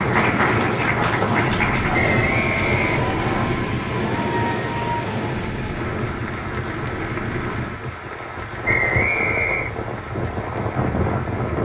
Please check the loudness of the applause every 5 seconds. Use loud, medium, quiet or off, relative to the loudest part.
loud, medium, quiet.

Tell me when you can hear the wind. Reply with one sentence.
You can hear the wind from 0.0 to 11.6 s.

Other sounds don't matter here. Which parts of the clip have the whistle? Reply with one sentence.
You can hear the whistle from 1.9 to 3.5 s and from 8.7 to 9.8 s.